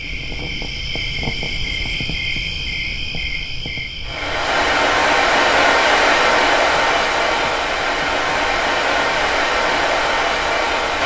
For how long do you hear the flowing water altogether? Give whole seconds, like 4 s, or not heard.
7 s.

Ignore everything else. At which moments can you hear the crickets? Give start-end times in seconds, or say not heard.
0.0-11.0.